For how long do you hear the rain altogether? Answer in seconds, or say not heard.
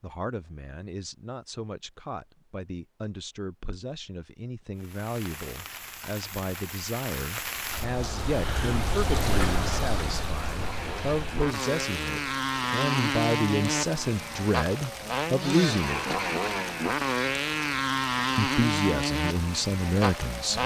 16 s.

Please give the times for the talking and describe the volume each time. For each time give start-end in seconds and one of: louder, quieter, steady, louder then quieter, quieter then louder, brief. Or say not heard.
0.0-16.2 louder
18.4-20.6 brief.